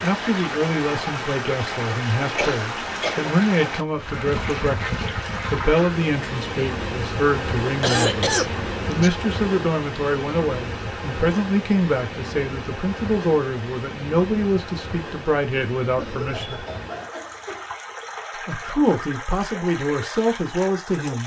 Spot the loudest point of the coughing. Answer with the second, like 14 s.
8 s.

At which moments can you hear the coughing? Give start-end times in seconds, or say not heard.
2.4-3.2, 7.8-9.1, 15.9-17.7.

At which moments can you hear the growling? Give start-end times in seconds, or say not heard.
not heard.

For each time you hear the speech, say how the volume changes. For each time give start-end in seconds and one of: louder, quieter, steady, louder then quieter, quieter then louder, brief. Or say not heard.
0.0-16.6 steady
18.4-21.2 brief.